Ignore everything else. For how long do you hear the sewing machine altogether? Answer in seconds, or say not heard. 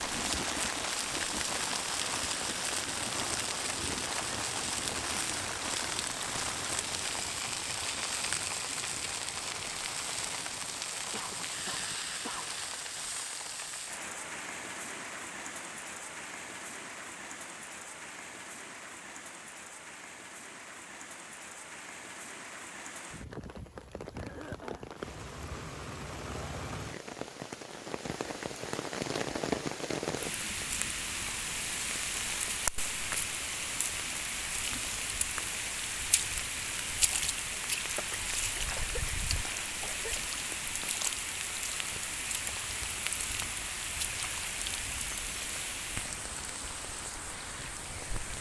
not heard.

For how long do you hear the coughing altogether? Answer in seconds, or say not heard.
4 s.